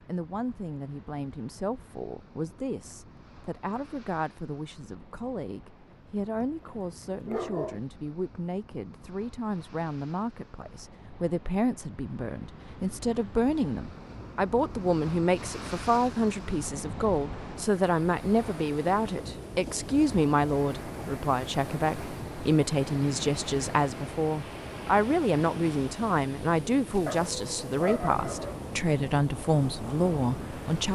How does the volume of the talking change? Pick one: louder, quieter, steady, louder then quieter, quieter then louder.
louder.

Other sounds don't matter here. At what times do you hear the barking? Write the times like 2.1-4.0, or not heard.
5.9-7.8, 27.1-28.6.